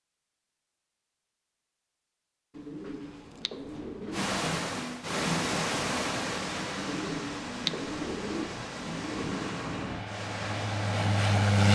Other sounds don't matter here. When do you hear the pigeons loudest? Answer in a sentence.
The loudest moment of the pigeons is at 8 seconds.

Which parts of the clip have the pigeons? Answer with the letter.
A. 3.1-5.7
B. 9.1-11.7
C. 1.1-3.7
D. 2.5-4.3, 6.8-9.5
D.